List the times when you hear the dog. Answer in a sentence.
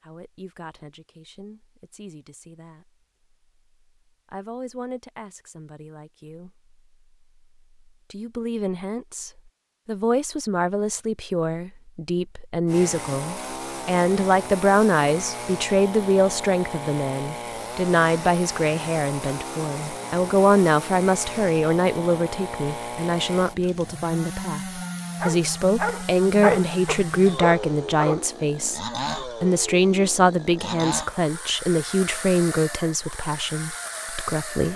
The dog can be heard from 25.1 to 28.2 s.